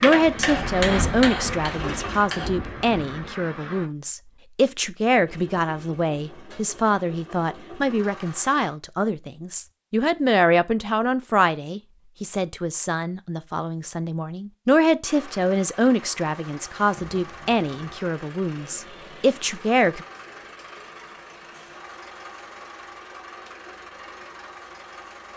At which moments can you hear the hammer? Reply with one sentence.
You can hear the hammer from 0.0 to 2.5 s.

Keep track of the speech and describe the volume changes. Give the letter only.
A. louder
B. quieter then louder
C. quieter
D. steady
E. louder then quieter
D.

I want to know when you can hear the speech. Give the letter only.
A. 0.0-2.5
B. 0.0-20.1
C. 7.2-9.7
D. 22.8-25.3
B.